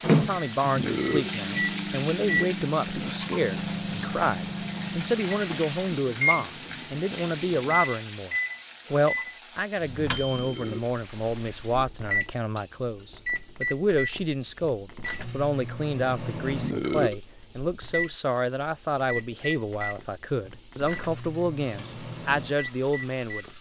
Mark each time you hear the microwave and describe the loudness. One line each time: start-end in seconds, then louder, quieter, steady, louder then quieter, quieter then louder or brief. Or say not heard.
0.0-23.5 quieter.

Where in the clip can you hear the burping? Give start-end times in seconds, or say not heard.
0.8-1.4, 10.3-10.9, 16.6-17.2.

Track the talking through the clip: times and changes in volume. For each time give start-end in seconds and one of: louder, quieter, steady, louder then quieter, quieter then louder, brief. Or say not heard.
0.0-23.4 steady.